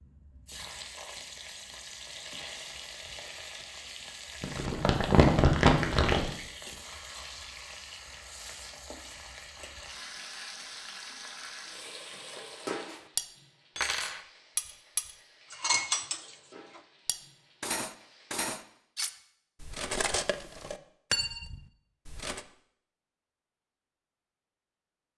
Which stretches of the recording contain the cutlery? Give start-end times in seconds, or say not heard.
11.7-22.4.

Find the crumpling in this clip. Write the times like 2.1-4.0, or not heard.
4.4-6.3.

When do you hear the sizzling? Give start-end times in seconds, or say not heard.
0.0-18.9.